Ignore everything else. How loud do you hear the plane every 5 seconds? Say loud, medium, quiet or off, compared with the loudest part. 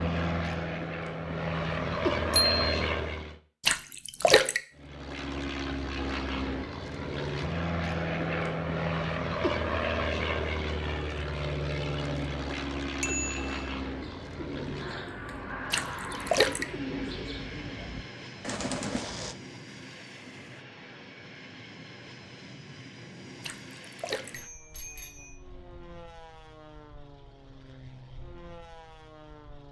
loud, loud, loud, medium, quiet, quiet.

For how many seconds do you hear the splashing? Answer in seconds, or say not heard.
3 s.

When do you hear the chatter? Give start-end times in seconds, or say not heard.
not heard.